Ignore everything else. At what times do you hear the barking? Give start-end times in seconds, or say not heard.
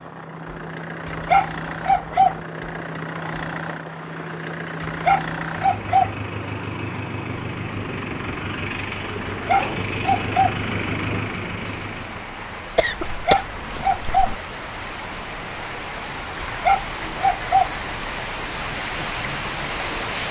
1.1-2.4, 4.8-6.2, 9.2-10.6, 13.1-14.3, 16.4-17.8.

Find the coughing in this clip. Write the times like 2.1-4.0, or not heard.
12.8-14.3.